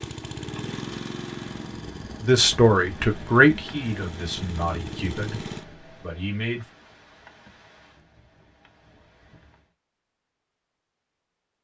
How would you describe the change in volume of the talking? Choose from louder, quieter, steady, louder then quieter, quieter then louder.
quieter.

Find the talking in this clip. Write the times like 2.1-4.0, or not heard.
2.2-6.7.